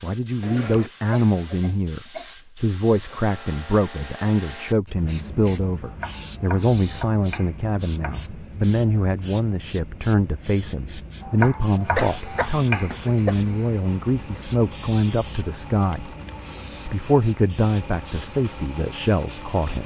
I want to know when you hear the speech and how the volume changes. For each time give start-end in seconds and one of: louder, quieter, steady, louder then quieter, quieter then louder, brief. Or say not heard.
0.0-16.1 steady
16.9-19.8 brief.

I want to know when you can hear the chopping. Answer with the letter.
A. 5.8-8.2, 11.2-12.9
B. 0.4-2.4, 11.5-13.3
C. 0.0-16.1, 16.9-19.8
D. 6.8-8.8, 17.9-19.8
A.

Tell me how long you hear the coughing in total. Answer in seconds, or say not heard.
4 s.